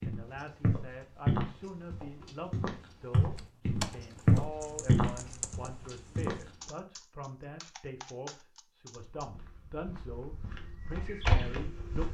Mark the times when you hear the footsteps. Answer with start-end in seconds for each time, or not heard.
0.0-6.3, 8.9-12.1.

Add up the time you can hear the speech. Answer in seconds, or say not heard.
12 s.